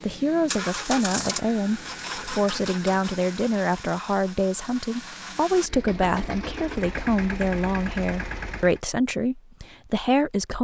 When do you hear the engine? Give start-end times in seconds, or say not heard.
0.0-8.8.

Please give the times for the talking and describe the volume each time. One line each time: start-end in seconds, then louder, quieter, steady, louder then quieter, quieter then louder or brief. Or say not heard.
0.0-10.5 steady.